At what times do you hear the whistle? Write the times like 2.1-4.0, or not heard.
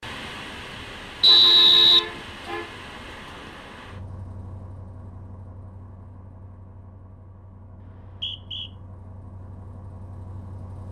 1.2-2.0, 7.8-8.7.